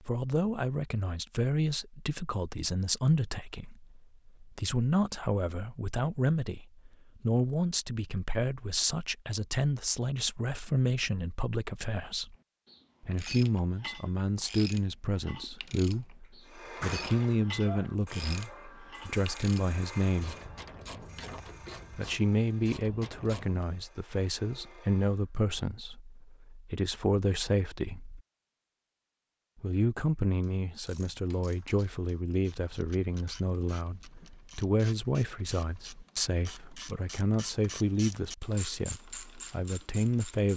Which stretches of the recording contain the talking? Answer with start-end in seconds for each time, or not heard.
0.1-12.3, 13.0-20.4, 21.9-28.2, 29.6-40.5.